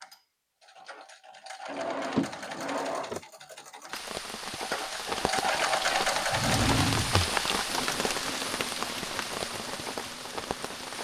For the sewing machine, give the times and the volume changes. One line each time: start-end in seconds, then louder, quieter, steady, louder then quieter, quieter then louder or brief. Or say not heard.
0.0-10.9 louder then quieter.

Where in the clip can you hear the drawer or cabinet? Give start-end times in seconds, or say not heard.
1.6-3.2, 6.3-7.2.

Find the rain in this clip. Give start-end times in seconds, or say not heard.
3.9-10.9.